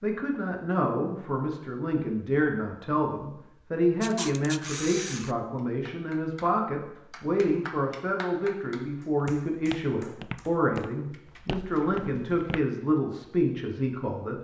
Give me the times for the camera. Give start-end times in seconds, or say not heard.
4.0-5.3.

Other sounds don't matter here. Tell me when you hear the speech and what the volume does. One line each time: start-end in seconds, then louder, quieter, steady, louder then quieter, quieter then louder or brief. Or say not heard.
0.0-14.4 steady.